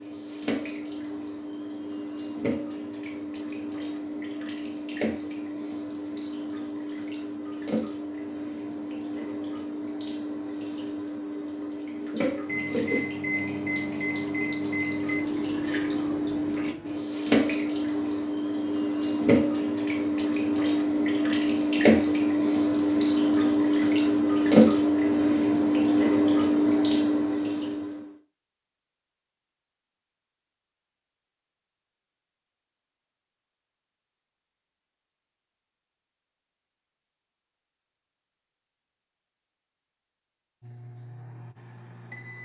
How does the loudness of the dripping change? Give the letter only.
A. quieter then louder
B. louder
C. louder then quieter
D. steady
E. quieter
B.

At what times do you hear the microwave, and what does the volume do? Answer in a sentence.
You can hear the microwave from 12.4 to 17.1 s, getting quieter; and briefly from 40.6 to 42.4 s.